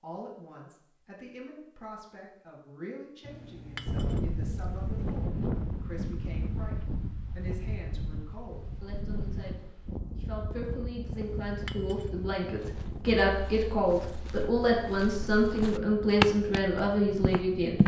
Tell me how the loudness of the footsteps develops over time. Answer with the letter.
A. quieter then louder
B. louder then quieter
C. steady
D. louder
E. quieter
B.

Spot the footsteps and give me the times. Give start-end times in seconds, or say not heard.
12.5-17.8.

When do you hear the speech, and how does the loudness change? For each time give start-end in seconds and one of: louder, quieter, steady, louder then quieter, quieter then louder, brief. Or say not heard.
0.0-17.8 louder.